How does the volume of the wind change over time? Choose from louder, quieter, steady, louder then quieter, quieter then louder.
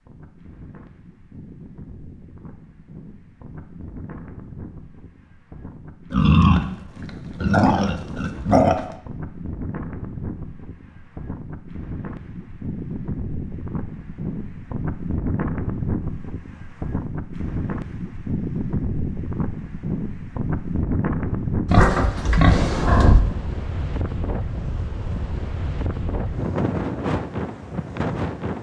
louder.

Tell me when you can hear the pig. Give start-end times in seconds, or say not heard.
6.1-8.9, 21.6-23.2.